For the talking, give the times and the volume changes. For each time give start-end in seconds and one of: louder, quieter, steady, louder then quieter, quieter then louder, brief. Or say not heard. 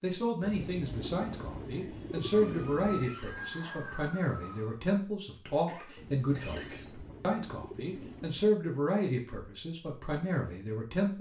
0.0-11.1 steady.